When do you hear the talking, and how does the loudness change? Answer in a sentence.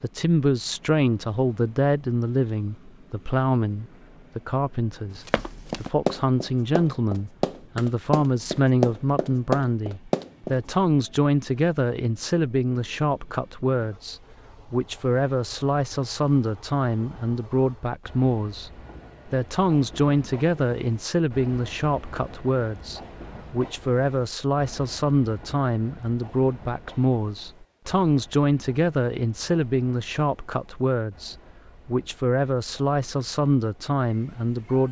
You can hear the talking from 0.0 to 34.8 s, at a steady volume.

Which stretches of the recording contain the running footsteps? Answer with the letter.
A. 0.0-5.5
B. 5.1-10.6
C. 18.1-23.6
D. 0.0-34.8
B.